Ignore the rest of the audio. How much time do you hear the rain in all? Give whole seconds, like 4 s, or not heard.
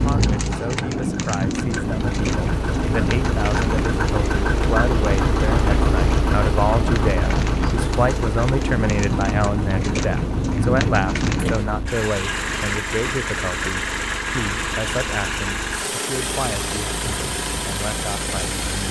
12 s.